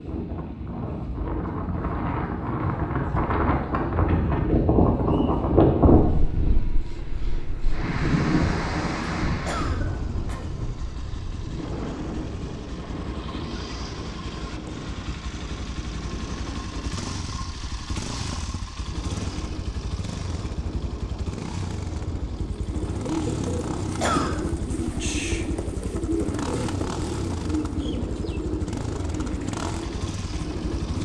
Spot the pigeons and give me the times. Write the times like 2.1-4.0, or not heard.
22.4-31.0.